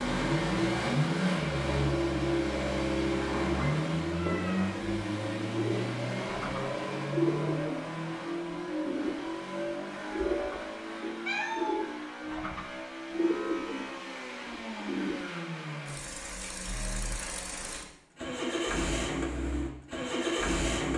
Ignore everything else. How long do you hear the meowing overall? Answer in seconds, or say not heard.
2 s.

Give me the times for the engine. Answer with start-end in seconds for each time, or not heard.
0.0-20.9.